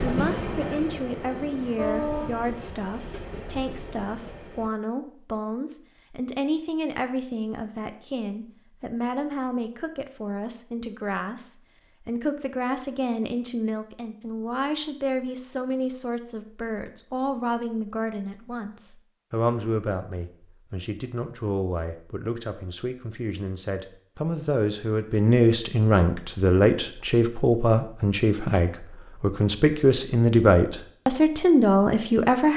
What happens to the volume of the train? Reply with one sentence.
The volume of the train goes down.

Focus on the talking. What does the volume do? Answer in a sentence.
The volume of the talking goes up.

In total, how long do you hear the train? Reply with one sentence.
You can hear the train for 5 seconds altogether.